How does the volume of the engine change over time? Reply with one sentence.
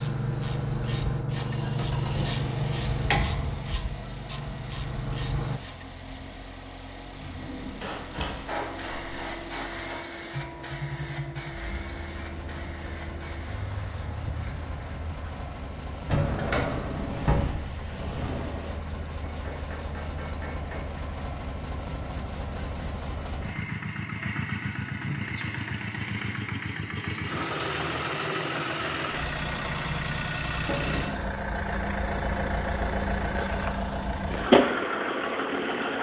The volume of the engine goes up.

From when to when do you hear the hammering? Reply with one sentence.
You can hear the hammering from 7.8 to 10.2 s and from 19.2 to 21.1 s.